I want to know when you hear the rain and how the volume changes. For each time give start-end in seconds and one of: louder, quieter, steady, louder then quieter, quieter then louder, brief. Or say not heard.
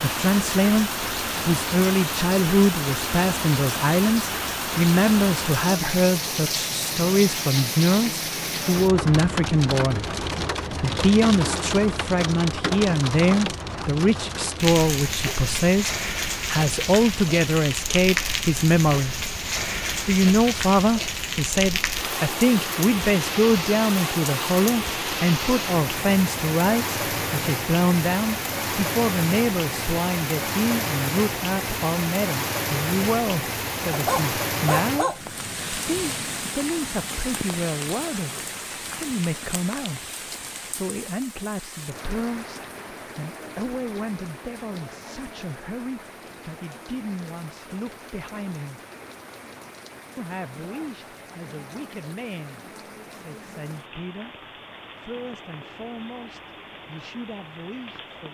0.0-58.2 quieter.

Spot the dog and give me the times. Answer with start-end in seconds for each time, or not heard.
33.9-35.2.